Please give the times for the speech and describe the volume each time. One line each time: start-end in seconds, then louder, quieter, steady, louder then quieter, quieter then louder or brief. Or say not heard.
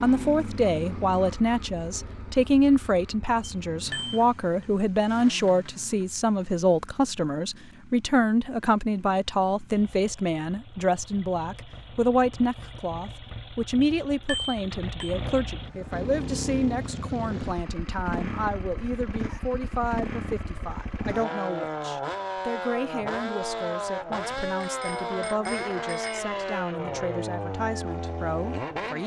0.0-29.0 quieter.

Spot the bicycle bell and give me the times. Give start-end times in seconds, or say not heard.
3.4-4.2, 13.8-15.2, 24.6-26.2.